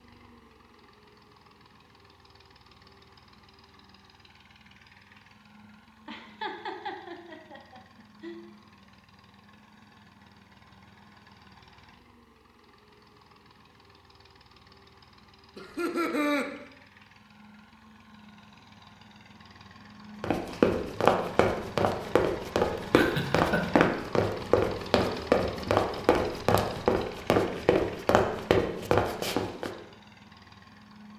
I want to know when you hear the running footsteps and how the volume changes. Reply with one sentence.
You can hear the running footsteps from 20.2 to 29.7 s, at a steady volume.